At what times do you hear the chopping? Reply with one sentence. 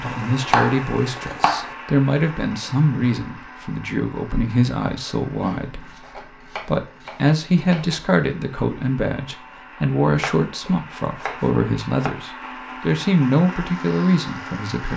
The chopping can be heard from 0.0 to 1.8 s, from 5.4 to 8.1 s and from 10.2 to 12.1 s.